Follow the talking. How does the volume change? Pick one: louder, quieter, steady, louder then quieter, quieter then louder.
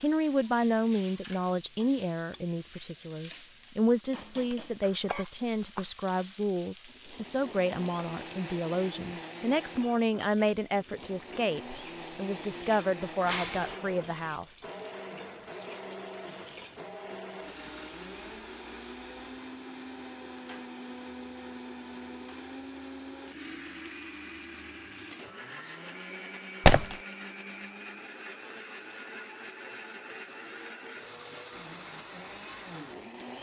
steady.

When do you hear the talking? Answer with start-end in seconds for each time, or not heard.
0.0-14.7.